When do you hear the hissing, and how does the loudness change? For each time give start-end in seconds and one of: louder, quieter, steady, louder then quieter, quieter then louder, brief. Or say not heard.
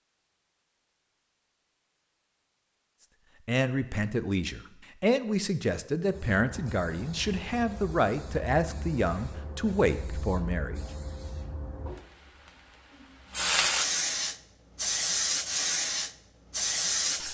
6.0-17.3 louder.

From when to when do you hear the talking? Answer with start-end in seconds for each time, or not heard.
3.5-10.8.